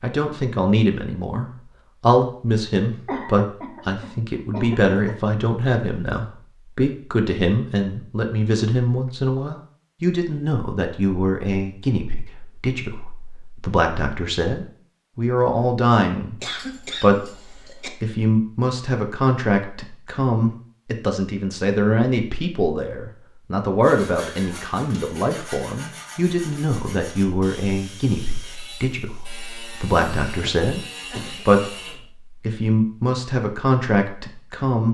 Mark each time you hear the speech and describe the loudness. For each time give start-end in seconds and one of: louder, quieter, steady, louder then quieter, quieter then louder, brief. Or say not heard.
0.0-34.8 steady.